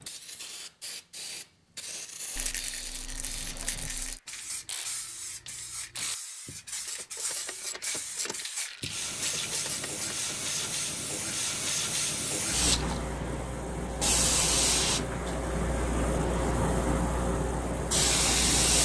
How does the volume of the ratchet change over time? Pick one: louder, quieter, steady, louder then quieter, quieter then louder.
louder.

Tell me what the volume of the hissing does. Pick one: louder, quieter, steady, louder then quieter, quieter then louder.
louder.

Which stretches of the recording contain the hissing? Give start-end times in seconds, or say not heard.
0.0-18.8.